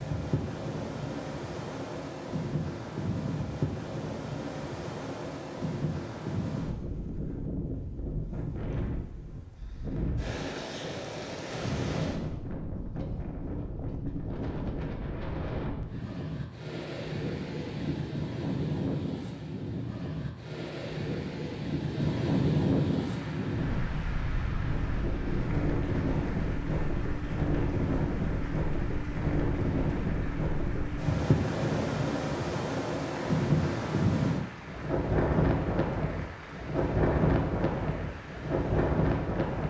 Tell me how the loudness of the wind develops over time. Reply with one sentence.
The volume of the wind goes up.